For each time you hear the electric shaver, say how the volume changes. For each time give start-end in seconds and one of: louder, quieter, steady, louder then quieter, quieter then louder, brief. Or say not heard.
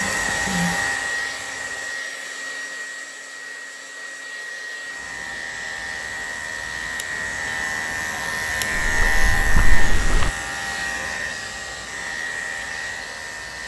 0.0-2.0 brief
4.8-13.6 louder then quieter.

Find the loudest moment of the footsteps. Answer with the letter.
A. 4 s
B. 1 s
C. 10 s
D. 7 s
C.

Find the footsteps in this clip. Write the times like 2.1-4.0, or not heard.
8.8-10.3.